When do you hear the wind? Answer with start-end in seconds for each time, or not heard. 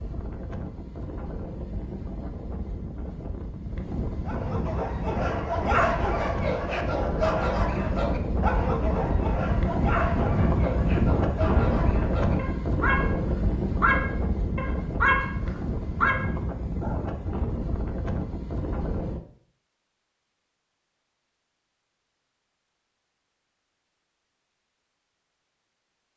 0.0-19.2.